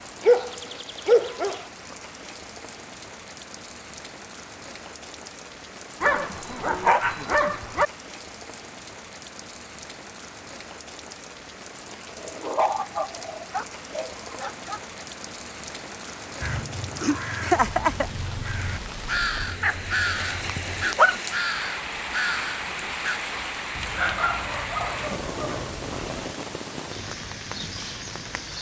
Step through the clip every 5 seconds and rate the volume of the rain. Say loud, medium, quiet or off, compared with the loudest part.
medium, medium, medium, medium, loud, loud.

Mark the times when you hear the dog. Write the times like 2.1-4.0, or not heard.
0.2-1.6, 6.0-7.8, 12.2-14.8, 19.4-21.2, 23.8-26.3.